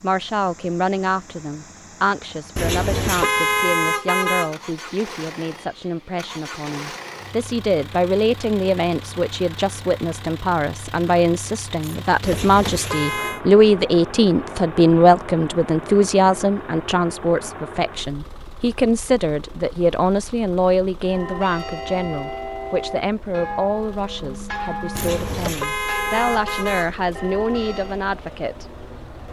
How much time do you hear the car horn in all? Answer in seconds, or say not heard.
5 s.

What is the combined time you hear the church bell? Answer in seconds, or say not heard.
7 s.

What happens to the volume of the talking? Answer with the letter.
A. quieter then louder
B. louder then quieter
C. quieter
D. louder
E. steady
B.